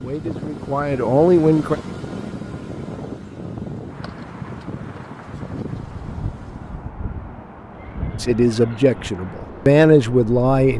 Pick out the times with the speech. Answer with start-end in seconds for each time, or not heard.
0.0-1.8, 8.2-10.7.